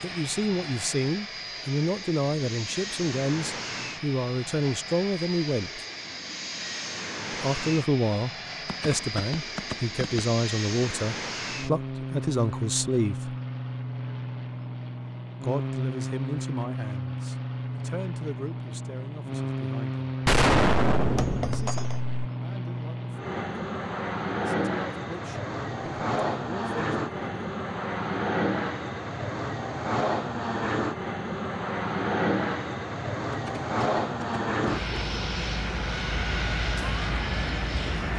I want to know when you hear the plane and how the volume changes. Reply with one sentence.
You can hear the plane from 0.0 to 38.1 s, getting louder.